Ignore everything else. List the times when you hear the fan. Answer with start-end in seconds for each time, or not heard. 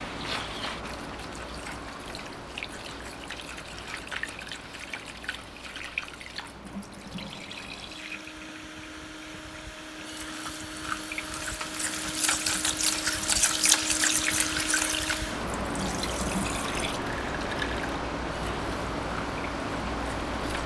0.0-20.6.